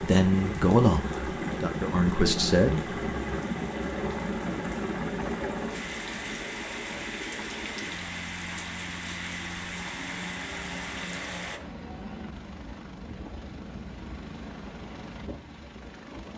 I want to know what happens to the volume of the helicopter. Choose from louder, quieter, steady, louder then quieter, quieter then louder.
quieter.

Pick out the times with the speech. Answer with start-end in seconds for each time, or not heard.
0.0-3.0.